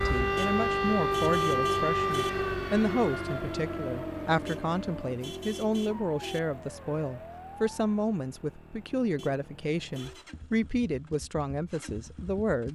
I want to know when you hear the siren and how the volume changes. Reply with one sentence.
You can hear the siren from 0.0 to 7.7 s, getting quieter.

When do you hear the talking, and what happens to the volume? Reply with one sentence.
The talking can be heard from 0.1 to 12.6 s, at a steady volume.